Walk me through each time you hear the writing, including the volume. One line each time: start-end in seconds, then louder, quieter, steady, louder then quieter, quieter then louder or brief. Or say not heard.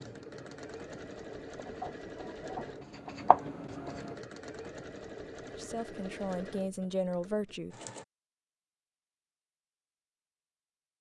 0.0-4.2 louder.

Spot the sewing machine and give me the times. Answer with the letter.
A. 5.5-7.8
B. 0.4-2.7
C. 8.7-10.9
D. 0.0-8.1
D.